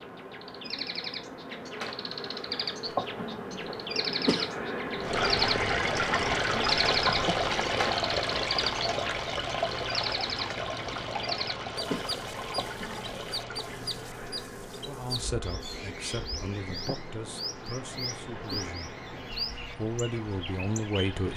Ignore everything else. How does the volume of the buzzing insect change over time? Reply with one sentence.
The loudness of the buzzing insect goes down.